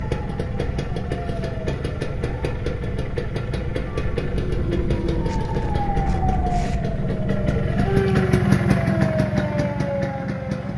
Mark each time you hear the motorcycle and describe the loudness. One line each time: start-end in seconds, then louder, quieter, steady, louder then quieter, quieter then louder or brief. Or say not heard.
0.0-10.7 louder.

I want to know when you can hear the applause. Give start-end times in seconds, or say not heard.
not heard.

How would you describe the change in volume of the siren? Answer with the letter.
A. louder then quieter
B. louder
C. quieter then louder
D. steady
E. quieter
B.